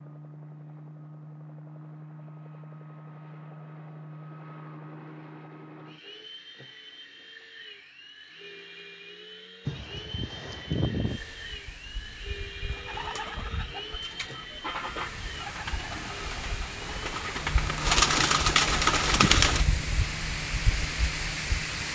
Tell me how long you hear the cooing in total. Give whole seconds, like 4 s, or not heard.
7 s.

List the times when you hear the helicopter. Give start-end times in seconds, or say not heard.
0.0-21.9.